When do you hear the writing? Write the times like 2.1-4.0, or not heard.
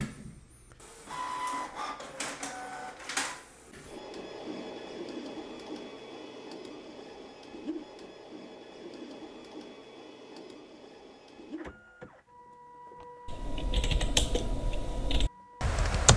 not heard.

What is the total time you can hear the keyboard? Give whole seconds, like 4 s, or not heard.
3 s.